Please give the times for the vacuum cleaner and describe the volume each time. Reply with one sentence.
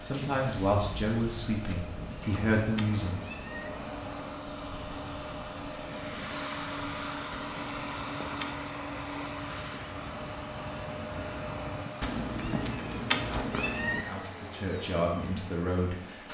You can hear the vacuum cleaner from 0.0 to 16.2 s, getting louder then quieter.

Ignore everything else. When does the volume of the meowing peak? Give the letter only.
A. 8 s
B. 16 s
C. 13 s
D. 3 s
C.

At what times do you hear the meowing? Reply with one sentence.
The meowing can be heard from 1.6 to 3.7 s, from 7.3 to 8.7 s and from 12.0 to 14.1 s.